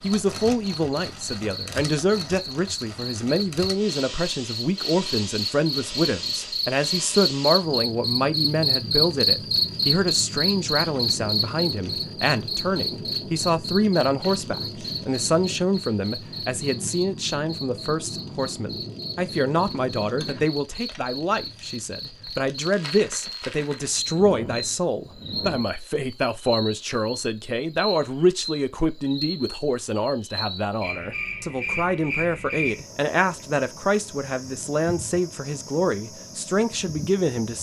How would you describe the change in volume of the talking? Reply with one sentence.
The loudness of the talking stays about the same.